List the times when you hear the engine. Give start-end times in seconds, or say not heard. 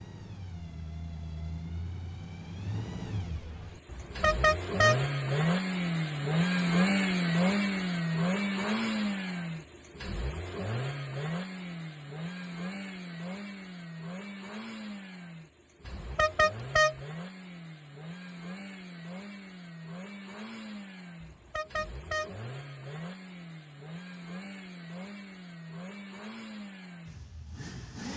0.0-28.1.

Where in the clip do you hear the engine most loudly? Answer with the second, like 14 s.
7 s.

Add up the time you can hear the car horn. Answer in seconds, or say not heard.
3 s.